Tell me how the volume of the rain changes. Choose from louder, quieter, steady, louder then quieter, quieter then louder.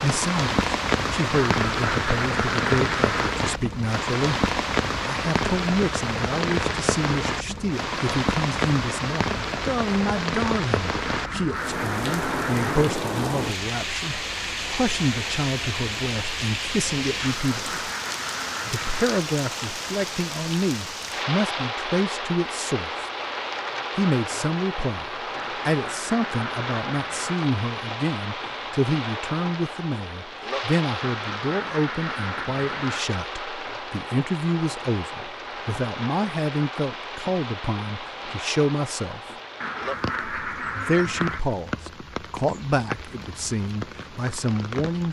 quieter.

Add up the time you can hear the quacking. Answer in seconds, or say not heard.
12 s.